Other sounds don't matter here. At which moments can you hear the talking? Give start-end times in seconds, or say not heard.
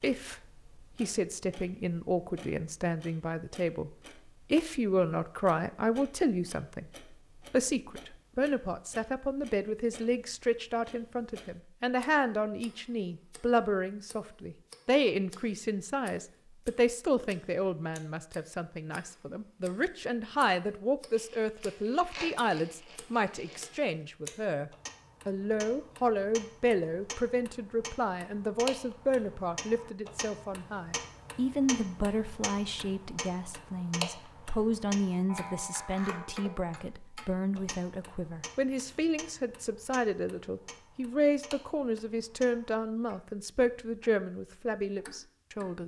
0.0-3.9, 4.5-6.8, 7.5-45.8.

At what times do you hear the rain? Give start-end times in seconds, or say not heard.
not heard.